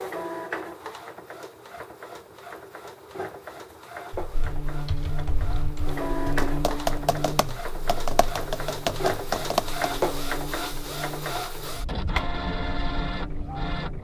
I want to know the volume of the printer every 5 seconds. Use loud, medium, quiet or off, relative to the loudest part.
medium, loud, loud.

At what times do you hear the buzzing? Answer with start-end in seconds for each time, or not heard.
4.3-13.9.